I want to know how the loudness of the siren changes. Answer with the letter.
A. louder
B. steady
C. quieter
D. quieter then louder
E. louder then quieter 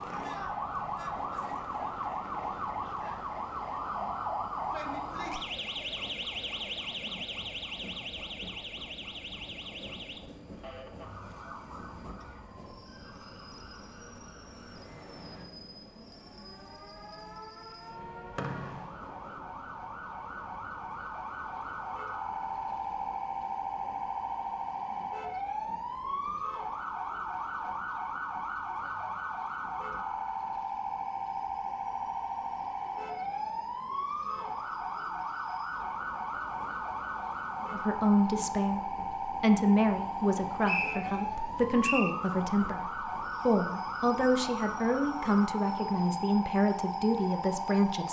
D.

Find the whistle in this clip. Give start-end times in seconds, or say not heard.
18.4-18.9, 40.6-42.1.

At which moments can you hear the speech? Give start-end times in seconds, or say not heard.
37.7-38.8, 39.4-42.9, 43.5-48.0.